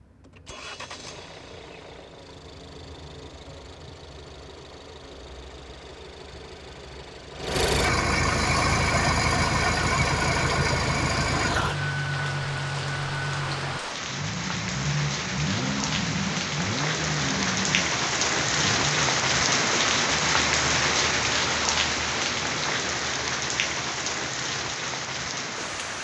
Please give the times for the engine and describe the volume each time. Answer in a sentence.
The engine can be heard from 0.0 to 19.1 s, getting louder then quieter.